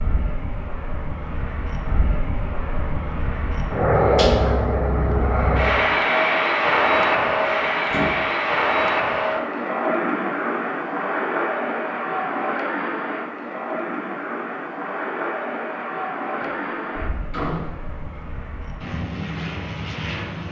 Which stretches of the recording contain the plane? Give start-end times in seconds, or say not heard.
0.0-20.4.